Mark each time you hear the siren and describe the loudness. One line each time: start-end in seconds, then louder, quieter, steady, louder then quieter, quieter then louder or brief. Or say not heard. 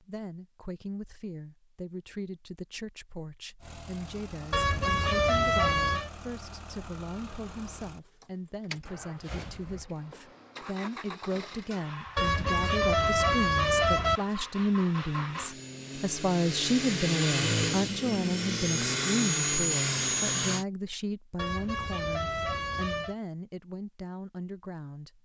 not heard.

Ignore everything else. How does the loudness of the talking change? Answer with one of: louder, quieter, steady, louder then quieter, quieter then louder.
louder then quieter.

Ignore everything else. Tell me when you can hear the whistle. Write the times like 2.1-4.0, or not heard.
not heard.